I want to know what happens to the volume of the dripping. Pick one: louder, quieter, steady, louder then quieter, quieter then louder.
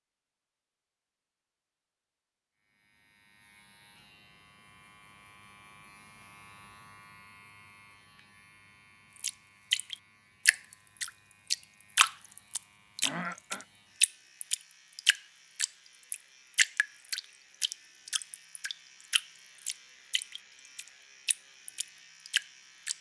quieter.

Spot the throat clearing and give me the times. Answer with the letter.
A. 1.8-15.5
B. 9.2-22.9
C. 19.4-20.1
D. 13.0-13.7
D.